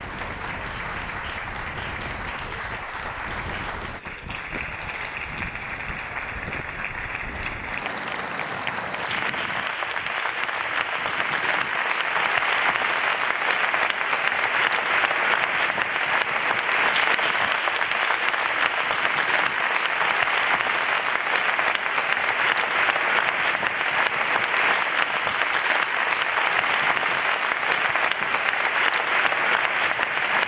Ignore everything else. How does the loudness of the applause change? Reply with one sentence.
The volume of the applause goes up.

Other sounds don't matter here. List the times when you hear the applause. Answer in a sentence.
The applause can be heard from 0.0 to 30.4 s.